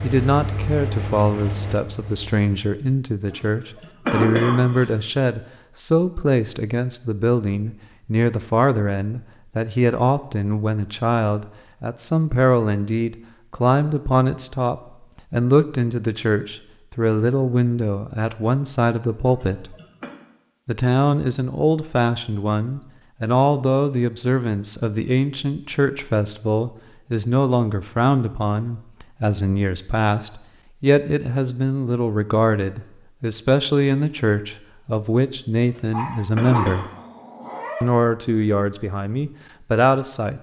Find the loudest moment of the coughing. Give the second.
4 s.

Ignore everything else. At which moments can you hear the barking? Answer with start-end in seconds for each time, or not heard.
35.9-37.9.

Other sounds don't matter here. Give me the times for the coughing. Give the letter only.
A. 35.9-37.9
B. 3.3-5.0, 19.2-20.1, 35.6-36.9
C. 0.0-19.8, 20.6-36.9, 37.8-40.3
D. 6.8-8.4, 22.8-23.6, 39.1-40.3
B.